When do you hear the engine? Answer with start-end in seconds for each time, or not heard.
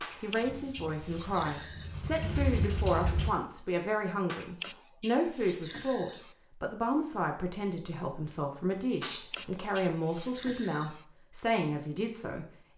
0.0-3.4.